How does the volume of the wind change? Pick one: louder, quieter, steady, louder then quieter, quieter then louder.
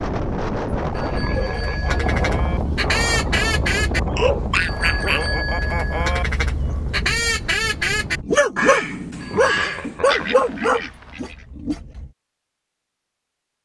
quieter.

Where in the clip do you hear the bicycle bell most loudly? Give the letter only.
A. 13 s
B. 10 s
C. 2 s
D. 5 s
D.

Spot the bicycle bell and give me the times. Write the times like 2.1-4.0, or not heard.
0.9-2.6, 4.5-6.2, 9.2-9.8.